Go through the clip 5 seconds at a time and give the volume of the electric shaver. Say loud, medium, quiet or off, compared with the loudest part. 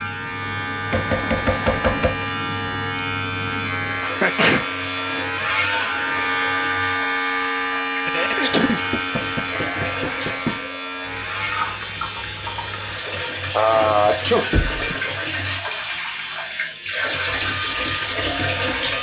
loud, loud, medium, medium.